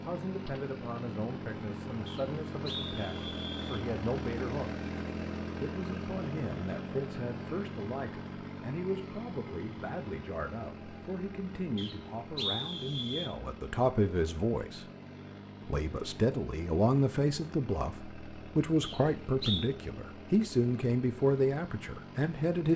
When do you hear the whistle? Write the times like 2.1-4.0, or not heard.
2.0-3.9, 11.8-13.3, 18.8-19.7.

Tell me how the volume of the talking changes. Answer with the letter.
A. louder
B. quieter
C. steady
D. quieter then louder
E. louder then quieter
A.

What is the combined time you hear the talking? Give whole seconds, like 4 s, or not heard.
21 s.